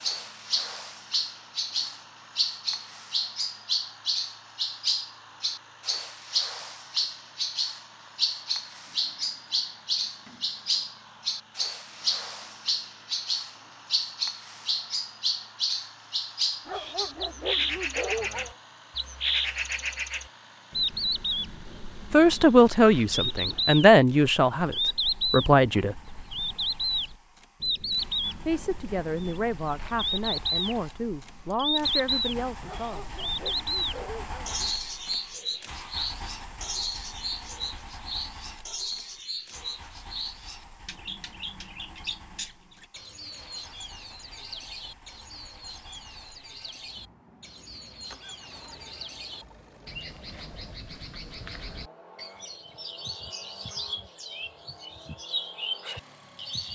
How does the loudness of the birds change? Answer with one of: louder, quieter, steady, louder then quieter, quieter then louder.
quieter.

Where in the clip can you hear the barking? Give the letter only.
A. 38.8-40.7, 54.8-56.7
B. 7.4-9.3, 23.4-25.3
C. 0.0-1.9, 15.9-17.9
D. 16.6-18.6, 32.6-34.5
D.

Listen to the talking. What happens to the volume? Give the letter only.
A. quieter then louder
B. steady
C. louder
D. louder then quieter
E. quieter
E.